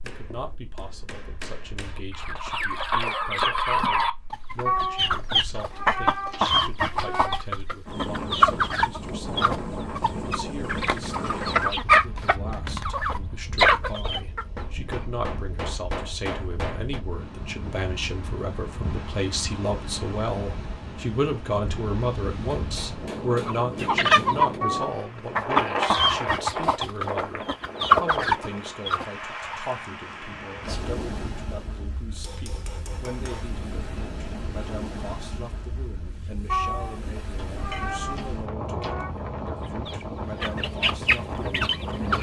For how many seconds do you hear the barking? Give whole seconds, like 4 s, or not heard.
not heard.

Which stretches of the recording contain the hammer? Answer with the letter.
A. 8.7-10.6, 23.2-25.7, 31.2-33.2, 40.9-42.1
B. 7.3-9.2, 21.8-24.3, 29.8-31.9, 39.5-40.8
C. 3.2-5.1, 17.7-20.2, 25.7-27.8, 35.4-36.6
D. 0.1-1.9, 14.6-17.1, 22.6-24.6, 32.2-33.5
D.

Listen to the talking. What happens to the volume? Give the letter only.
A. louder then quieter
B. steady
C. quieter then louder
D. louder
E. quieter
A.